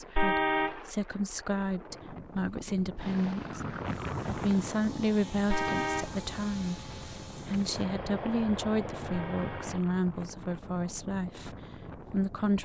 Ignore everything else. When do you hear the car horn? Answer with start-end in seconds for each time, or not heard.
0.1-0.8, 5.5-6.2, 9.1-9.8.